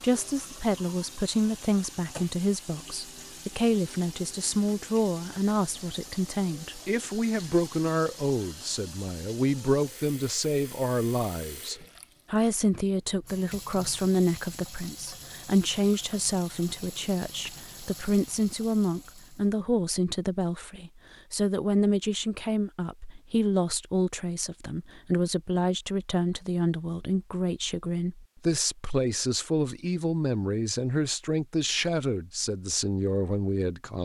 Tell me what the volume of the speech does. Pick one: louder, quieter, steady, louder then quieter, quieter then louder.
steady.